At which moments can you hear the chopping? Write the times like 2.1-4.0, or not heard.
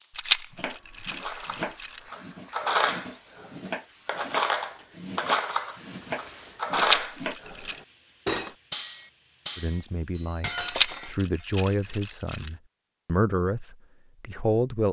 0.5-7.3.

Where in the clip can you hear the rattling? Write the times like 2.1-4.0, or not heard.
0.1-2.0, 6.8-7.8, 10.7-12.5.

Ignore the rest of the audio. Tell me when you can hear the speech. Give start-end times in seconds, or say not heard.
9.6-14.8.